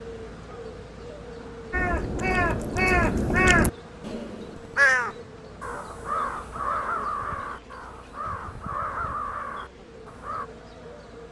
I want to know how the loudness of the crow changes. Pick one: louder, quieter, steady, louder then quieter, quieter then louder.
quieter.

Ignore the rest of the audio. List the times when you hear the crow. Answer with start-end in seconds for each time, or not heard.
1.7-10.4.